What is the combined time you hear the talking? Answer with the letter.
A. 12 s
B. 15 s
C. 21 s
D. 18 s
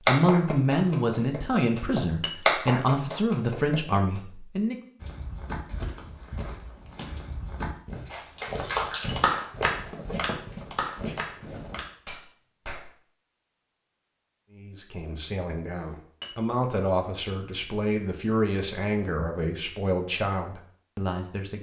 A.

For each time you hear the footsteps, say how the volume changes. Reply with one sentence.
The footsteps can be heard from 5.0 to 11.8 s, at a steady volume.